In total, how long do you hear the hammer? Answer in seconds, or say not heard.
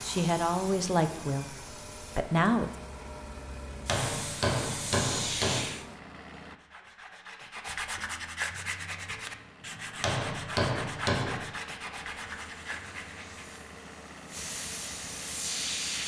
3 s.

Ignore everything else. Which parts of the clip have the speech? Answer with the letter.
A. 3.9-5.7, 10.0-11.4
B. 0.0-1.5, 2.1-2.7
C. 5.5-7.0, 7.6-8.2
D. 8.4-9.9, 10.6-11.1
B.